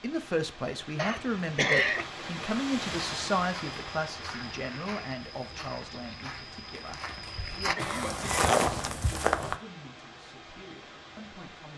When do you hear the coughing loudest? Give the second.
2 s.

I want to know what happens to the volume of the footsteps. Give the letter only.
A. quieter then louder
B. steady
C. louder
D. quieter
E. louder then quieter
C.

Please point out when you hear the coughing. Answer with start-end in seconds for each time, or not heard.
0.9-2.0, 7.0-8.5.